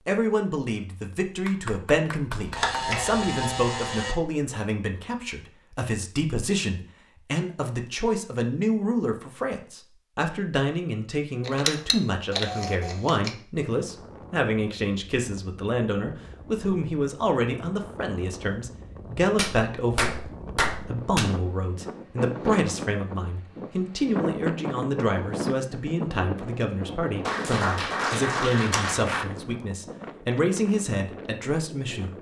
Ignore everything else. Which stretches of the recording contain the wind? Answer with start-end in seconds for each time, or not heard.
13.7-32.1.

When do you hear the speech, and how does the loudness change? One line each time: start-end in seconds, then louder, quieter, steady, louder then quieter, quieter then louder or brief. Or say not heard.
0.1-32.1 steady.